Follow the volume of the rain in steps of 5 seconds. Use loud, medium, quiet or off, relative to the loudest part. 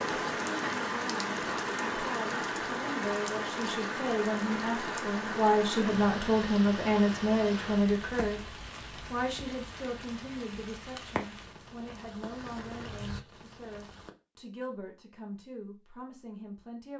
loud, medium, medium, off.